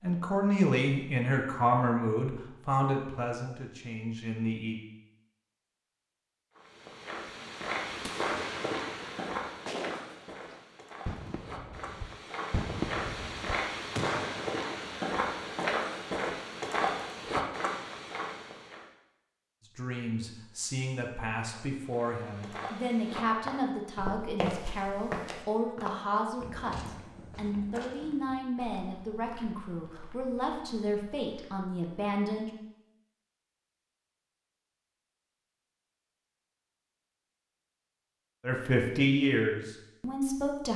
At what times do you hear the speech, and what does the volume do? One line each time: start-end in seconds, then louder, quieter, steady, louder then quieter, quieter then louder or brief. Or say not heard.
0.0-4.8 quieter
19.8-32.5 steady
38.5-40.7 brief.